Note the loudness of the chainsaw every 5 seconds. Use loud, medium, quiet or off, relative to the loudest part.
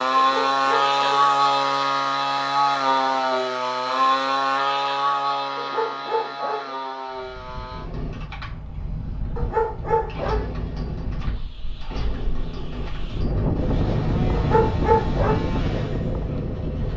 loud, medium, quiet, quiet.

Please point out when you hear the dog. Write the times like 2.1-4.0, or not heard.
0.1-1.1, 5.5-6.8, 9.3-10.5, 14.3-15.5.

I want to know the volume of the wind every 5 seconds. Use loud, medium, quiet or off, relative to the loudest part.
off, medium, loud, loud.